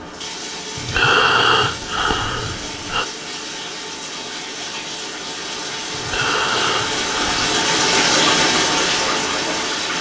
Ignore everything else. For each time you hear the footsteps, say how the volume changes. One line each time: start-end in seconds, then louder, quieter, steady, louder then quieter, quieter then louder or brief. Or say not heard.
not heard.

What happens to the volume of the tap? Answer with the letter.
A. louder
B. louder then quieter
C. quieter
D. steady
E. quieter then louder
A.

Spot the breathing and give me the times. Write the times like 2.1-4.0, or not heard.
0.8-3.0, 5.9-7.5.